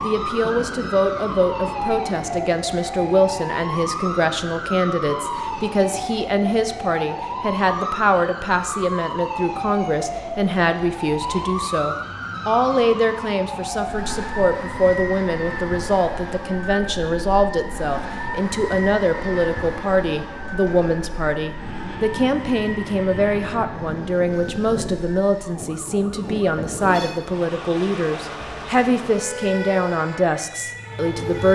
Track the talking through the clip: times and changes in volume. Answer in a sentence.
The talking can be heard from 0.0 to 31.5 s, at a steady volume.